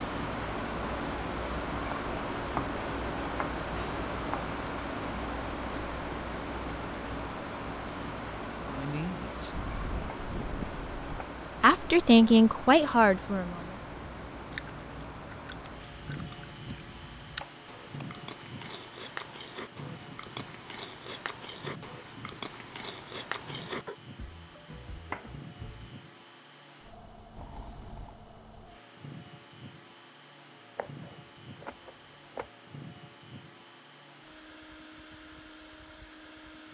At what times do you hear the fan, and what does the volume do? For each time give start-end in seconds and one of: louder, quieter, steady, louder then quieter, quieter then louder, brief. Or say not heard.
0.0-36.6 quieter.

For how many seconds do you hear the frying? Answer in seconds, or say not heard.
not heard.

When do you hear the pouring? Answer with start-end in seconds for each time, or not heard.
27.4-28.2.